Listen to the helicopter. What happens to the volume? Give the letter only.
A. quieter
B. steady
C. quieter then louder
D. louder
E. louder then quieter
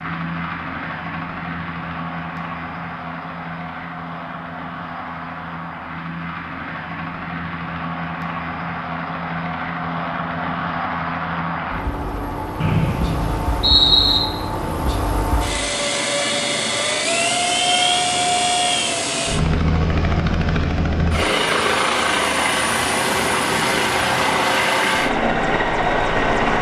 D.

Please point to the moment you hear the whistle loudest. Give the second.
14 s.